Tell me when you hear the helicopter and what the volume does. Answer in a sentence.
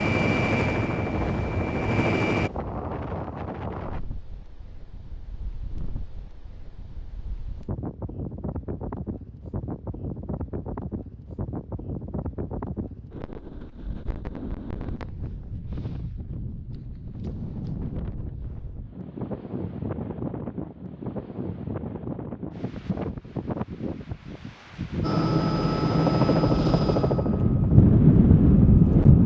The helicopter can be heard briefly from 0.0 to 2.5 s; and from 25.0 to 29.2 s, getting quieter.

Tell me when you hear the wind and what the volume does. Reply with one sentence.
The wind can be heard from 0.1 to 29.2 s, getting louder.